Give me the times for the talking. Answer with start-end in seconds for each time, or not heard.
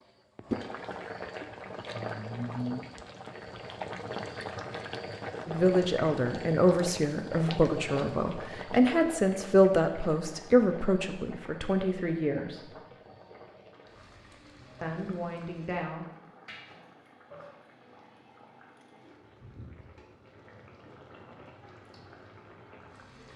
5.5-12.8, 14.8-16.1.